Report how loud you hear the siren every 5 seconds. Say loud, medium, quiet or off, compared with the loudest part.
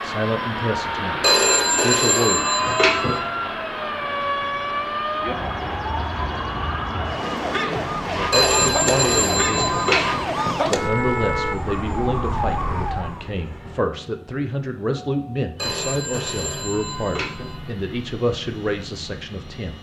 loud, loud, loud, off.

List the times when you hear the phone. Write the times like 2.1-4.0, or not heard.
1.2-3.2, 8.3-10.2, 15.6-17.6.